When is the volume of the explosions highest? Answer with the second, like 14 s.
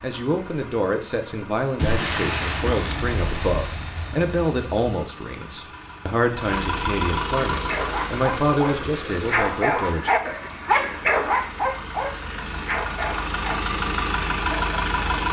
2 s.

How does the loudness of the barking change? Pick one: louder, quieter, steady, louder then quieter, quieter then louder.
louder then quieter.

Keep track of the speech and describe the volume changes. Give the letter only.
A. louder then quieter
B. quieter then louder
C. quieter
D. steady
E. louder
D.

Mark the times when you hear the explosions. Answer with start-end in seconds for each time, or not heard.
1.8-4.8.